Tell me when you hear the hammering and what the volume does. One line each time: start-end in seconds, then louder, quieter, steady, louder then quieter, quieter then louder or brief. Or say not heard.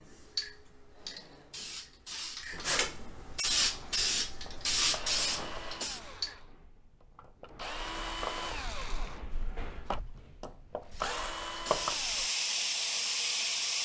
not heard.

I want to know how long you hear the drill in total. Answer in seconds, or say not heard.
9 s.